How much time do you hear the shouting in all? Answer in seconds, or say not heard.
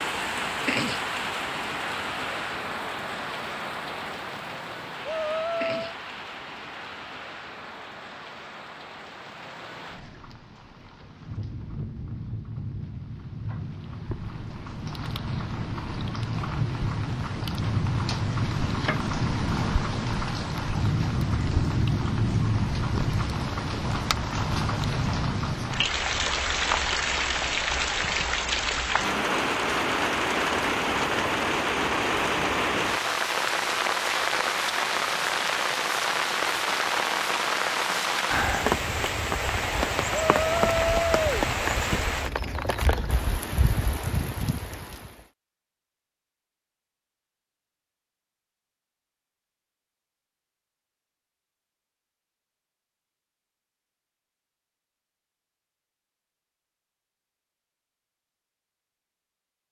2 s.